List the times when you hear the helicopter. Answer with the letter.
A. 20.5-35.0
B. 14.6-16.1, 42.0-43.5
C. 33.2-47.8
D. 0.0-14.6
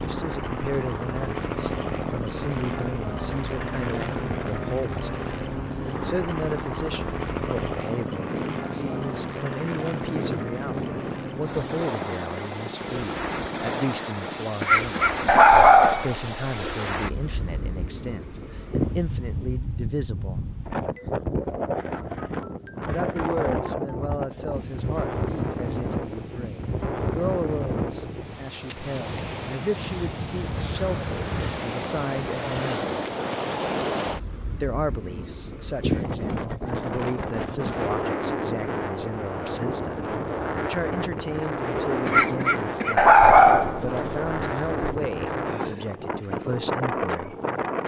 D.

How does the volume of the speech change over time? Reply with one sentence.
The loudness of the speech stays about the same.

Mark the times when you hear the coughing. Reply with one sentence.
You can hear the coughing from 14.6 to 16.1 s and from 42.0 to 43.5 s.